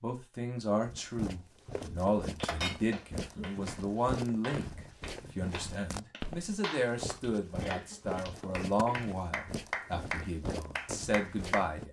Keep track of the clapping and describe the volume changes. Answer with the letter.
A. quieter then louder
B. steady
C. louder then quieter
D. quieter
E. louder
E.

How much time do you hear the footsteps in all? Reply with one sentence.
The footsteps can be heard for 11 seconds in total.